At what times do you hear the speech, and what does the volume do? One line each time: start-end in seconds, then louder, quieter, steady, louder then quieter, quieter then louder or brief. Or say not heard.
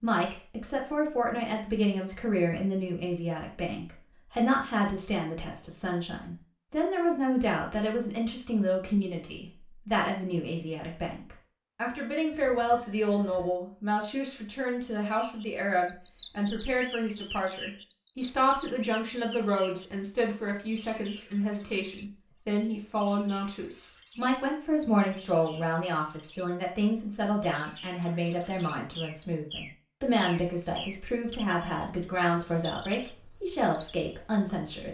0.0-34.8 steady.